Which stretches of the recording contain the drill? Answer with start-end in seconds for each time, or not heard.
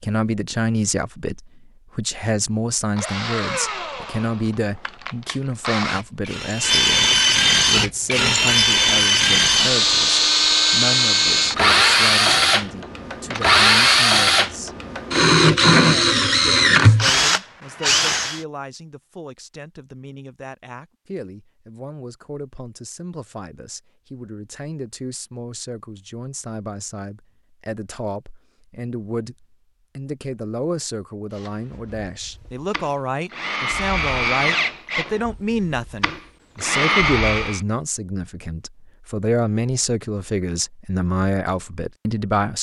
3.0-18.4, 31.3-37.6.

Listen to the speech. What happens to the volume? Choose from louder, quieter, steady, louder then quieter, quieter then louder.
quieter then louder.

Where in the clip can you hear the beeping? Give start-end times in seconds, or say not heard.
not heard.